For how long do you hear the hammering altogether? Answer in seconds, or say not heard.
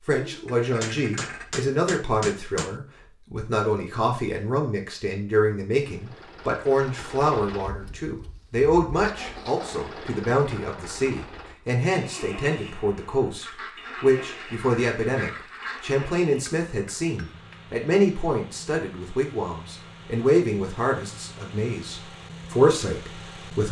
3 s.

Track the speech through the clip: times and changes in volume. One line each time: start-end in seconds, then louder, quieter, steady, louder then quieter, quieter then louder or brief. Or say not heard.
0.0-23.6 steady.